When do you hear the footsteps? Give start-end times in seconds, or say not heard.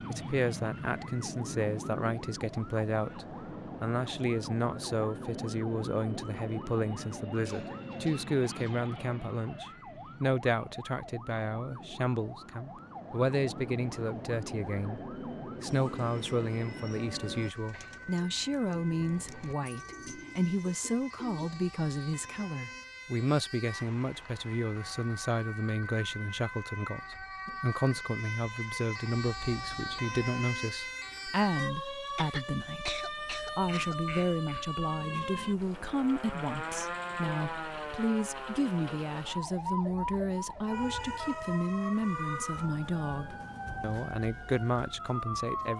not heard.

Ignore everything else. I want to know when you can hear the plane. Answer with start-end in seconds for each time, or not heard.
0.0-17.5.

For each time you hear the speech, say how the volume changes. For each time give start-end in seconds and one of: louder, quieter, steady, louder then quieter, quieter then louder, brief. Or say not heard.
0.1-45.7 steady.